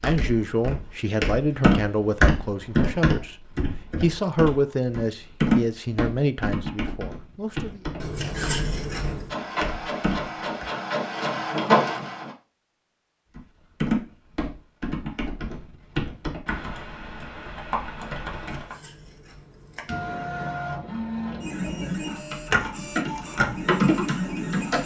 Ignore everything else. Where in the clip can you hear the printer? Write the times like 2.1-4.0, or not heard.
9.3-12.3, 19.9-24.8.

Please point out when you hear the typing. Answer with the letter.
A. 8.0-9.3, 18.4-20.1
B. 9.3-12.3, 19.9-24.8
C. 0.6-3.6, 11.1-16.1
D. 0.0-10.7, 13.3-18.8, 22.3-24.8
D.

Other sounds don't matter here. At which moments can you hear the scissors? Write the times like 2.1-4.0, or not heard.
8.0-9.3, 18.4-20.1.